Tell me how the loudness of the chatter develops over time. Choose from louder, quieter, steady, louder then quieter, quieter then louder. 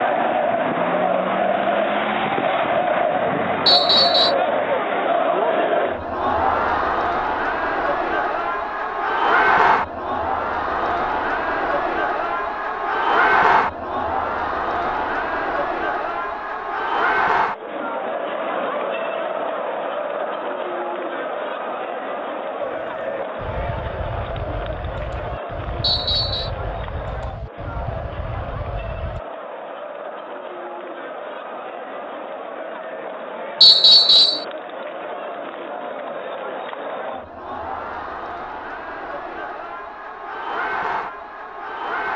quieter.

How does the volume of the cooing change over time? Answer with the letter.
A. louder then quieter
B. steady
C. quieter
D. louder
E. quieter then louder
B.